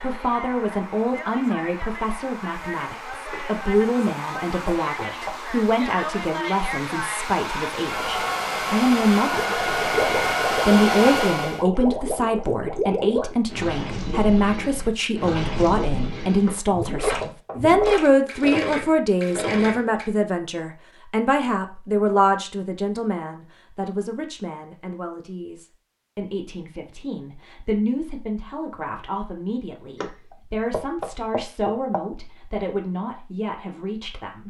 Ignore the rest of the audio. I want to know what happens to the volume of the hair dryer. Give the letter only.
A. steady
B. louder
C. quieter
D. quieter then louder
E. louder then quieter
B.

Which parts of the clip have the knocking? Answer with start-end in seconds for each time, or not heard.
3.3-5.3, 16.4-17.9, 30.0-32.0.